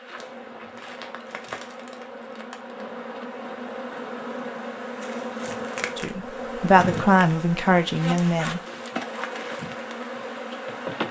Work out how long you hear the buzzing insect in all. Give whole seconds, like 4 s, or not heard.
11 s.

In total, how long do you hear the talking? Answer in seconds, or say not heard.
3 s.